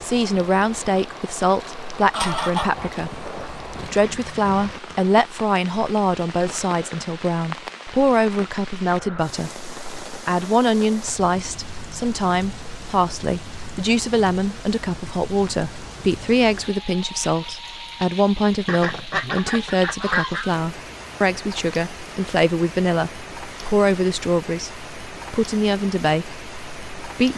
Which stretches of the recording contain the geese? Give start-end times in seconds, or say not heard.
2.1-4.0, 18.6-20.4.